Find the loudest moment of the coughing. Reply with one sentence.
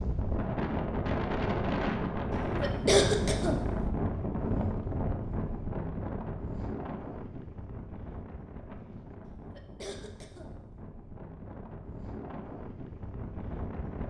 The loudest moment of the coughing is at 3 seconds.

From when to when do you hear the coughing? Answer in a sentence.
You can hear the coughing from 2.3 to 3.9 s and from 9.3 to 10.7 s.